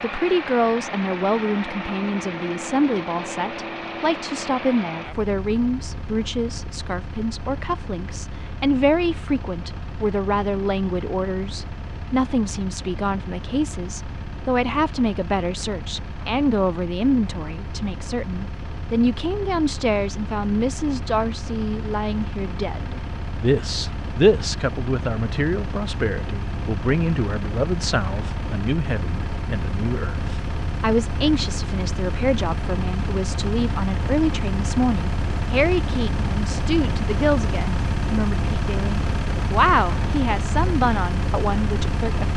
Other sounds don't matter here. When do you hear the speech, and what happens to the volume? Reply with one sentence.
The speech can be heard from 0.0 to 42.3 s, at a steady volume.